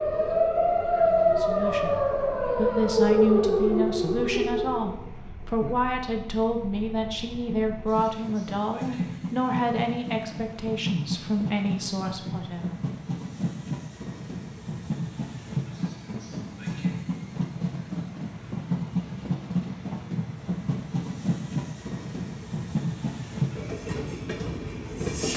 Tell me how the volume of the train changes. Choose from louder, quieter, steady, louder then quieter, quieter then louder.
louder.